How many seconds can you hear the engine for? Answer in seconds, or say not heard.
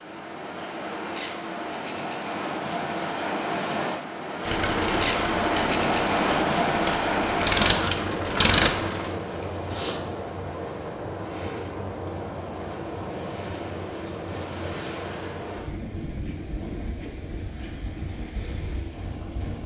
5 s.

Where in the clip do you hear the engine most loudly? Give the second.
8 s.